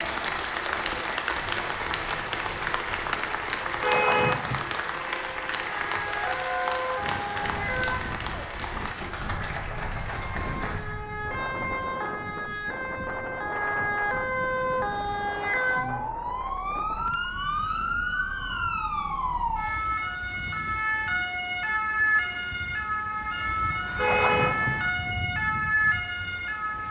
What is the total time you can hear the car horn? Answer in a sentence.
You can hear the car horn for 2 seconds altogether.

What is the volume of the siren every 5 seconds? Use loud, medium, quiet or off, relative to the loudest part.
quiet, medium, loud, loud, loud, loud.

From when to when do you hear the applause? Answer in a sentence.
The applause can be heard from 0.0 to 10.9 s.